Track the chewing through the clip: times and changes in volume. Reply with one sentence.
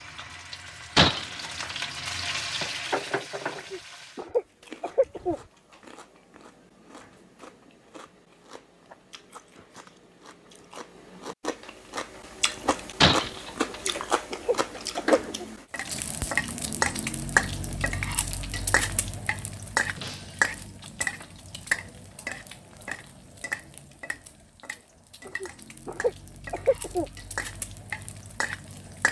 You can hear the chewing from 4.3 to 15.7 s, getting louder.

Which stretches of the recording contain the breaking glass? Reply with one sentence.
You can hear the breaking glass from 0.9 to 1.8 s, from 13.0 to 13.7 s and from 19.9 to 20.6 s.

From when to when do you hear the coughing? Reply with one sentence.
The coughing can be heard from 3.5 to 5.4 s, from 13.7 to 15.2 s and from 25.2 to 27.1 s.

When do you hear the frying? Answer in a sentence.
The frying can be heard from 0.0 to 4.2 s and from 15.7 to 29.0 s.